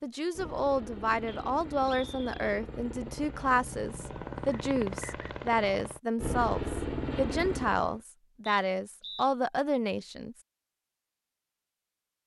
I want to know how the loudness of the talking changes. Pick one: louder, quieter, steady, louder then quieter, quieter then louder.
steady.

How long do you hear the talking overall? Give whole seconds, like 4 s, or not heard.
10 s.